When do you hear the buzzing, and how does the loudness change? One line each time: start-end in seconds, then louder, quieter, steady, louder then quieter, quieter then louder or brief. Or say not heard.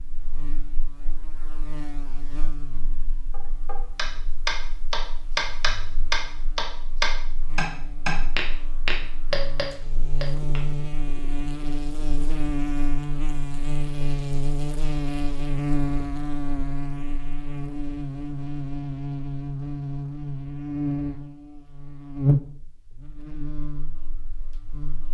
0.0-25.0 louder.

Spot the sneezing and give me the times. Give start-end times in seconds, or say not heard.
not heard.